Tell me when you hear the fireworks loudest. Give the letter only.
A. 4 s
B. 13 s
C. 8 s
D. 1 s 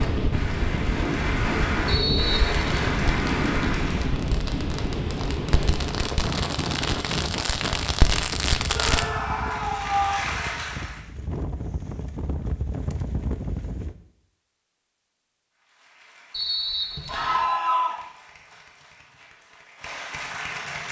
C.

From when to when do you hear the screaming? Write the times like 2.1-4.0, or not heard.
1.9-2.7, 8.7-10.2, 17.1-18.0.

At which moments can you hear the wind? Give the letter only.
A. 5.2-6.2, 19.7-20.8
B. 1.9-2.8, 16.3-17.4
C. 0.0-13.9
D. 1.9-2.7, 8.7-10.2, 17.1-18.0
C.